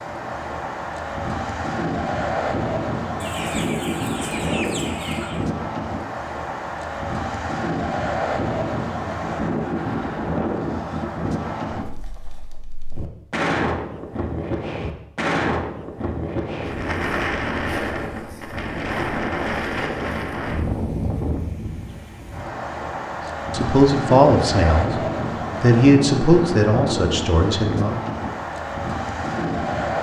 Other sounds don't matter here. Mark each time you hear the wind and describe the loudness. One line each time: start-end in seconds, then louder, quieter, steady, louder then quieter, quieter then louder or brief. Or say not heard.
0.0-29.9 steady.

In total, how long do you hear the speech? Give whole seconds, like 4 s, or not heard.
4 s.